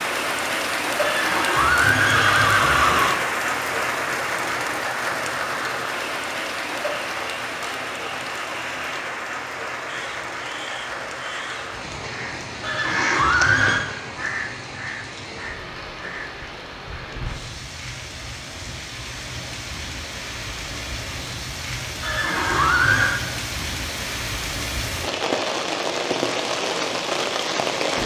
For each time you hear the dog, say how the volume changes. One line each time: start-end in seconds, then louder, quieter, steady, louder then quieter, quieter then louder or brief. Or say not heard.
not heard.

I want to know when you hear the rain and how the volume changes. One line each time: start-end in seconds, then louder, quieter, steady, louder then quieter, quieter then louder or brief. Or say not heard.
0.0-28.0 quieter then louder.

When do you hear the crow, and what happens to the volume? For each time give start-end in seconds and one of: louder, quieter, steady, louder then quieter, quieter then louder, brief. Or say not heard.
9.8-16.4 louder then quieter.